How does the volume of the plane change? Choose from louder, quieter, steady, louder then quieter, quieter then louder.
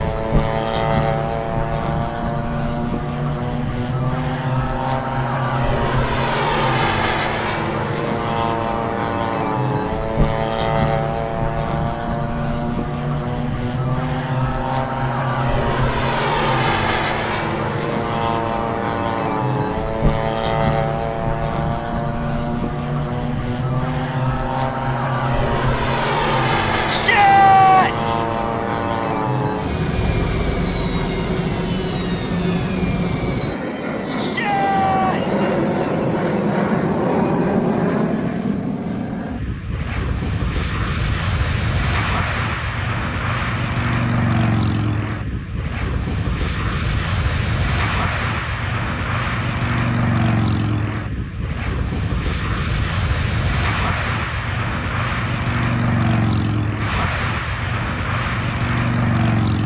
steady.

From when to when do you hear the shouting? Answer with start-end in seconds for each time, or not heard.
26.9-28.1, 34.1-35.4.